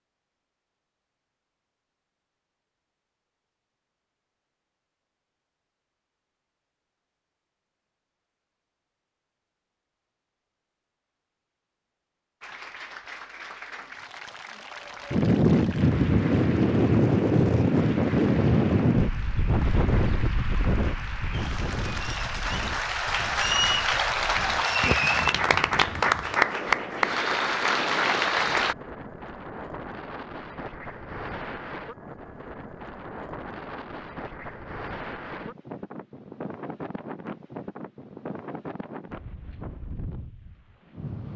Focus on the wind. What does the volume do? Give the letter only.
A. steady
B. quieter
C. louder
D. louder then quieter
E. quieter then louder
B.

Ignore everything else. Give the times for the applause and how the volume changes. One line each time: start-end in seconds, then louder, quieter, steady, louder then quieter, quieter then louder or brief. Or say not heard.
12.4-28.8 louder.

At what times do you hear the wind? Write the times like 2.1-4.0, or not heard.
15.1-41.3.